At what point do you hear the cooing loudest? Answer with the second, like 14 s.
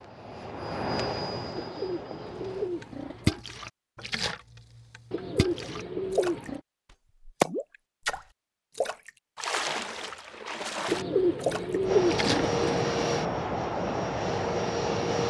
12 s.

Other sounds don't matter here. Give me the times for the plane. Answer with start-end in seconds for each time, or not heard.
0.0-2.7, 11.8-15.2.